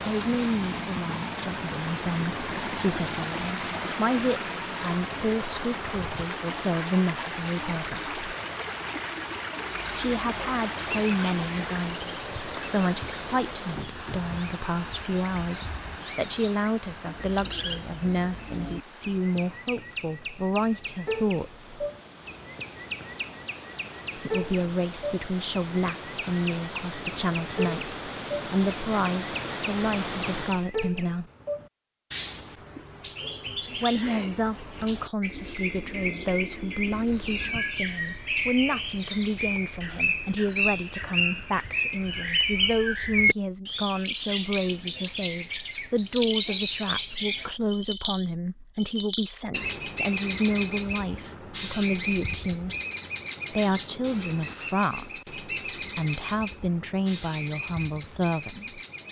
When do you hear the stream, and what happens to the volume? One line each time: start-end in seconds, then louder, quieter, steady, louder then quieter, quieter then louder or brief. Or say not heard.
0.0-30.7 quieter then louder.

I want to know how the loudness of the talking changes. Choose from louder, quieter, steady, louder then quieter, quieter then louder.
steady.